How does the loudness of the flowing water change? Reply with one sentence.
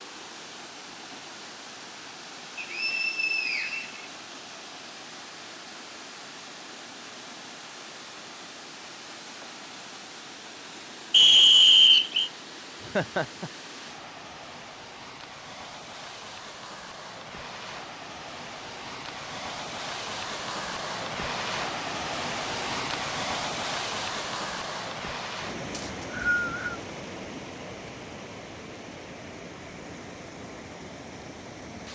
The volume of the flowing water goes up, then down.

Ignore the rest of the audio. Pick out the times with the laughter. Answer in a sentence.
The laughter can be heard from 12.8 to 13.5 s.